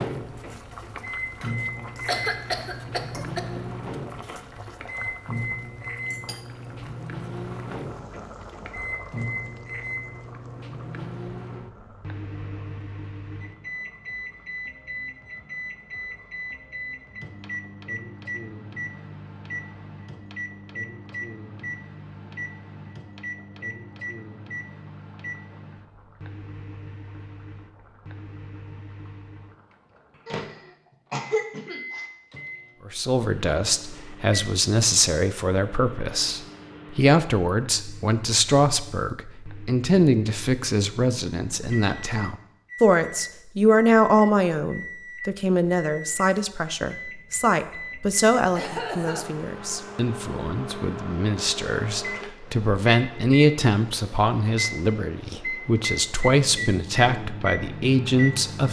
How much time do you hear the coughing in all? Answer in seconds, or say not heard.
4 s.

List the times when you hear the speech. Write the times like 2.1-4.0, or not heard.
32.9-58.6.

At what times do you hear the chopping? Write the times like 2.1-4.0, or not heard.
not heard.